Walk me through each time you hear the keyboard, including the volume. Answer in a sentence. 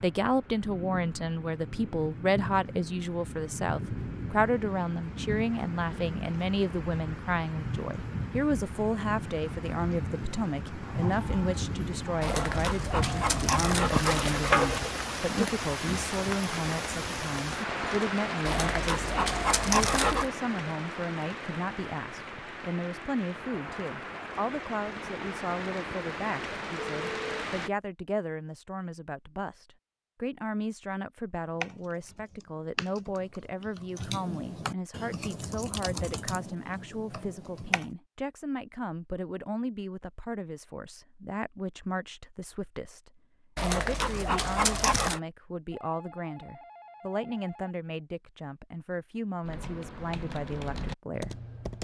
You can hear the keyboard from 31.6 to 37.9 s, getting louder then quieter; and briefly from 49.4 to 51.7 s.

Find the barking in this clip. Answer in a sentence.
The barking can be heard from 12.2 to 14.9 s, from 18.4 to 20.3 s and from 43.5 to 45.2 s.